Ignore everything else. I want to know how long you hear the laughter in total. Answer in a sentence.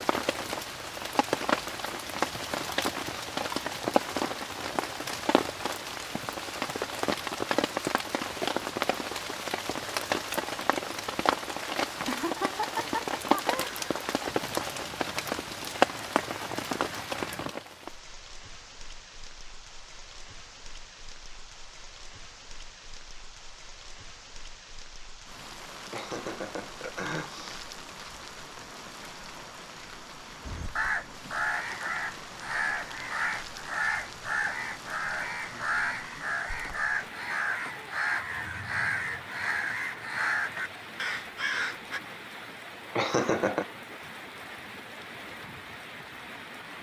The laughter can be heard for 4 seconds in total.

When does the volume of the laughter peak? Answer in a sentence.
The loudest moment of the laughter is at 43 seconds.